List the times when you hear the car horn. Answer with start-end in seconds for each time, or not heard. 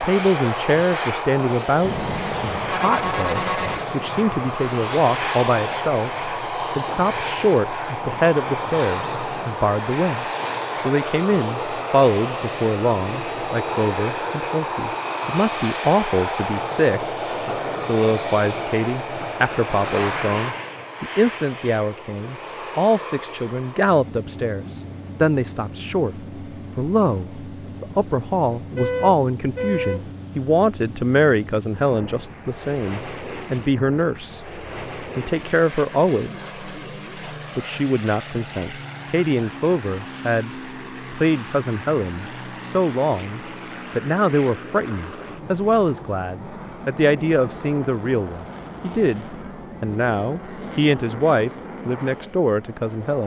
1.8-3.9, 28.6-30.1.